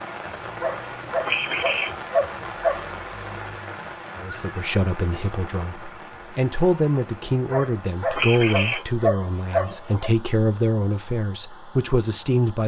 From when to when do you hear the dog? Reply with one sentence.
The dog can be heard from 0.6 to 2.9 s and from 7.5 to 10.1 s.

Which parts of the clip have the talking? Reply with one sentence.
The talking can be heard from 4.2 to 12.6 s.